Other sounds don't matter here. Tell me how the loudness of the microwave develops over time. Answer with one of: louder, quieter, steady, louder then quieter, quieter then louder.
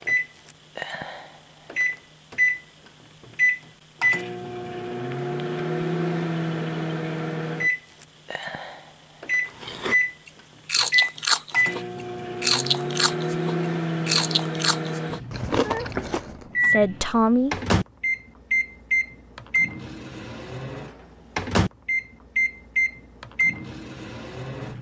steady.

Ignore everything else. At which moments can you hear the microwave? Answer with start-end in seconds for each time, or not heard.
0.0-24.7.